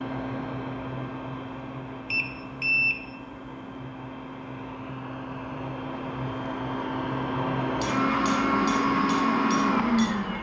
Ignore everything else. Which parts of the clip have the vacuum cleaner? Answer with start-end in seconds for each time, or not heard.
0.0-10.3.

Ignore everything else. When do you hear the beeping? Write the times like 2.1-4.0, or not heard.
2.0-3.6.